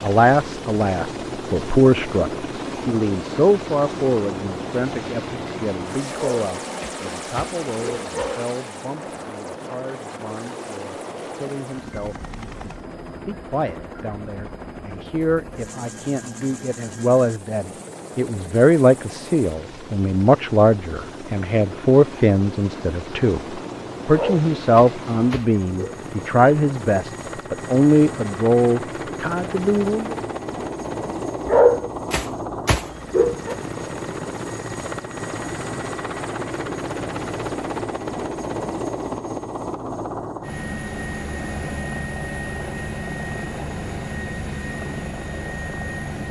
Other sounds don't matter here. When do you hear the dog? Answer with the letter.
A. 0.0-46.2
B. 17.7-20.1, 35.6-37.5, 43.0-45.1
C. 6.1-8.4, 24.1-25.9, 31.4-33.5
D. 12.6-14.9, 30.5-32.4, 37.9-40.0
C.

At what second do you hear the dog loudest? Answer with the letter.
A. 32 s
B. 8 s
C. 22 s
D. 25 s
A.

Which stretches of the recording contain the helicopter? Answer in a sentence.
The helicopter can be heard from 0.0 to 46.2 s.